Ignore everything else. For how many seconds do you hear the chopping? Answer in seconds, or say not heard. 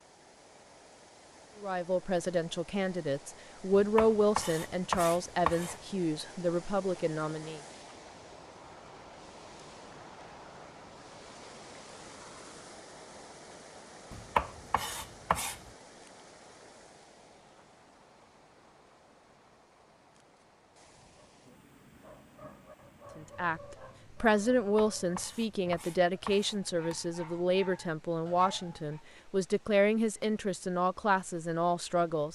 6 s.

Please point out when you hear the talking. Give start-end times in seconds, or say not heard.
1.6-7.6, 23.1-32.3.